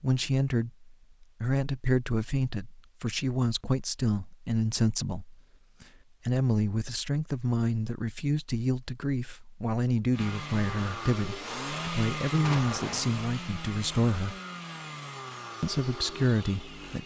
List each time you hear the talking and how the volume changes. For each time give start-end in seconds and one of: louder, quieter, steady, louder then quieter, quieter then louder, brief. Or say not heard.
0.0-14.3 steady
15.6-17.0 brief.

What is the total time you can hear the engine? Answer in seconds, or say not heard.
7 s.